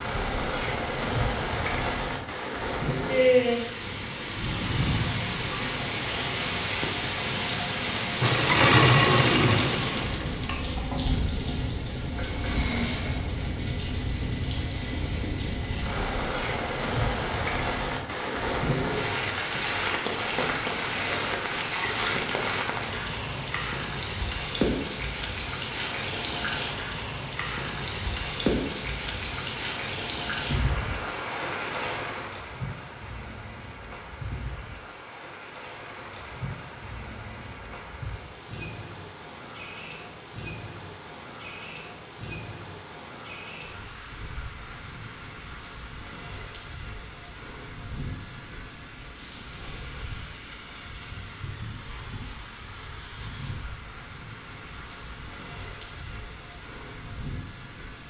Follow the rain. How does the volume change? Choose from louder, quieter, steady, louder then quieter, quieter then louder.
quieter.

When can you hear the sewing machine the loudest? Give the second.
9 s.